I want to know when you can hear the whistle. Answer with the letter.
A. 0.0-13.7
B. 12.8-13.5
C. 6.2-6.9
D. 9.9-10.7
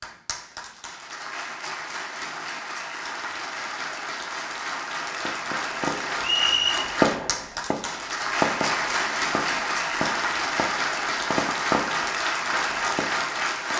C.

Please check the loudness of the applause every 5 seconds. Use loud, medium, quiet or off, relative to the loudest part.
medium, loud, loud.